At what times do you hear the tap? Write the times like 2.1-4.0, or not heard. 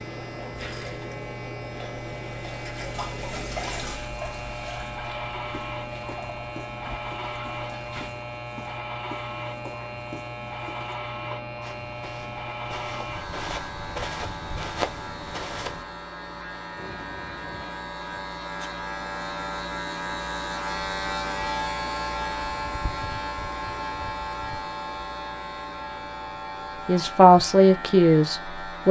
0.2-8.1, 16.8-18.7.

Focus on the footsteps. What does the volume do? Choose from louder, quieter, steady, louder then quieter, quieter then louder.
louder.